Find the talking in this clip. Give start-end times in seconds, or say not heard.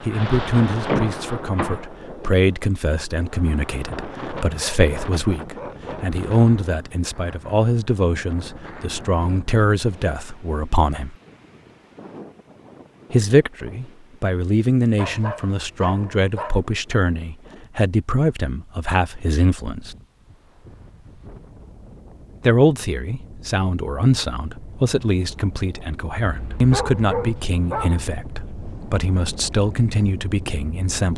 0.0-11.2, 13.1-19.9, 22.4-31.1.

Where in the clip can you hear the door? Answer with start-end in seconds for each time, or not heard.
0.8-2.4.